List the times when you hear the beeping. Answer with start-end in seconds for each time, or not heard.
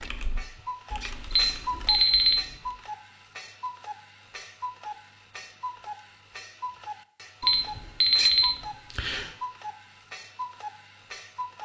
1.3-2.4, 7.4-9.2.